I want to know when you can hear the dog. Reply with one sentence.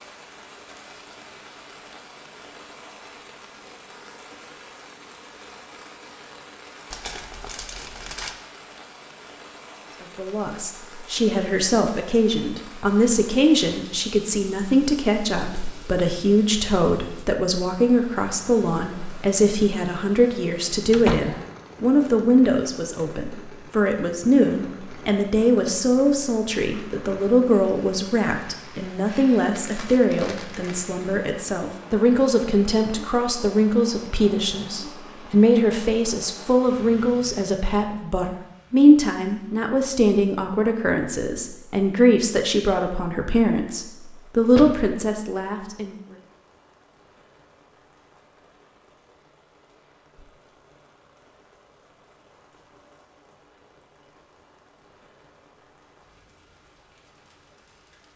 You can't hear the dog here.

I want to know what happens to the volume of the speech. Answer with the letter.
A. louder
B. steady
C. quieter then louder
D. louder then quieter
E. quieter
B.